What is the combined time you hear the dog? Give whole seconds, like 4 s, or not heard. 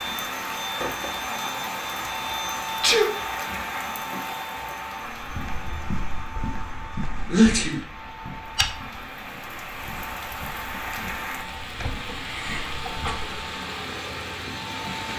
not heard.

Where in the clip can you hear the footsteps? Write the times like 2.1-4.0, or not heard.
5.2-13.3.